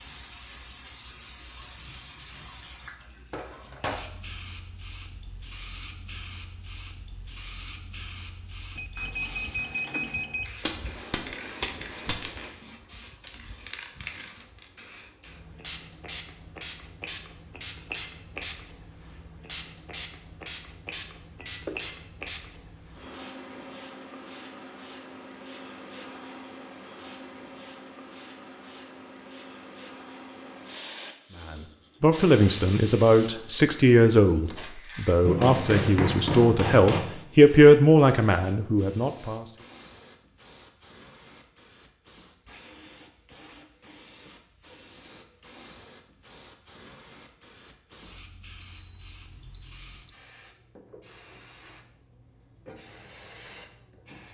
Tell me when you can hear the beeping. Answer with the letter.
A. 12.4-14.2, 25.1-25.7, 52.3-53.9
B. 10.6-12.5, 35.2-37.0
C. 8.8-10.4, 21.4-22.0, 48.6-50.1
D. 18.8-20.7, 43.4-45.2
C.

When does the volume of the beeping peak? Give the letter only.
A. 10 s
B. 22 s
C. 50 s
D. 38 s
A.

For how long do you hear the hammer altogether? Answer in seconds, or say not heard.
4 s.